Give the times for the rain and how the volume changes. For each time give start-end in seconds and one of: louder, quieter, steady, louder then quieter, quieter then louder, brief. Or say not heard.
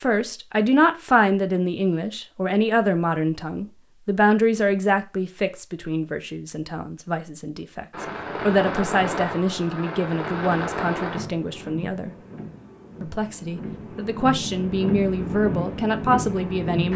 7.9-16.9 quieter then louder.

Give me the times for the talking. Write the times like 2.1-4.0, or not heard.
0.0-12.1, 13.0-16.9.